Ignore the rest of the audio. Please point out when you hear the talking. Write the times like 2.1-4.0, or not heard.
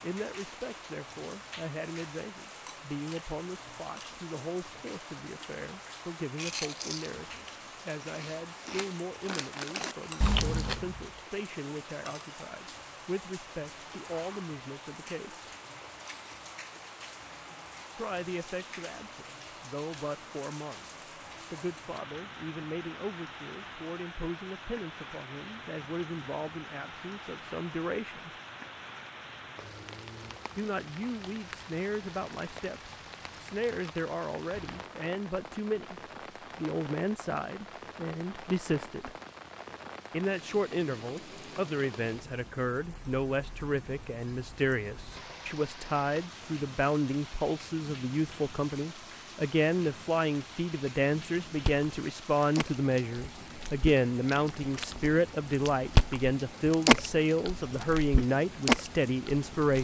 0.0-15.5, 17.9-20.9, 21.5-28.3, 30.6-39.1, 40.1-59.7.